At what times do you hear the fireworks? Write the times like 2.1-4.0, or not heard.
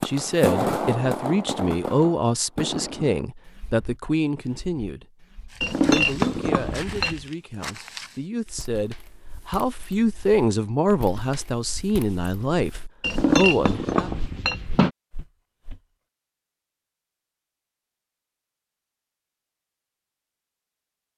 0.0-5.7.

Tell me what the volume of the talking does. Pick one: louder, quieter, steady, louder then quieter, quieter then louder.
quieter then louder.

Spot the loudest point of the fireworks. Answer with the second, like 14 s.
1 s.